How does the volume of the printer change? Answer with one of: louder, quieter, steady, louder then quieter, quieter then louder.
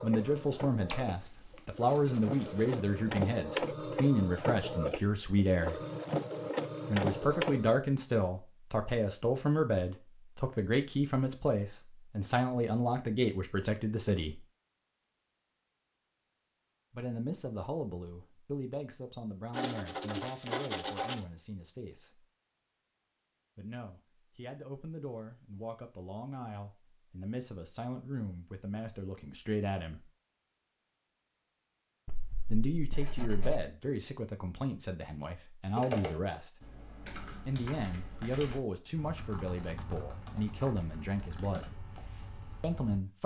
louder.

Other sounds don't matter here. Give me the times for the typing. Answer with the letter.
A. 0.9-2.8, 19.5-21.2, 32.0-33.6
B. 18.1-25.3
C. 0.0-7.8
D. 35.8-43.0
D.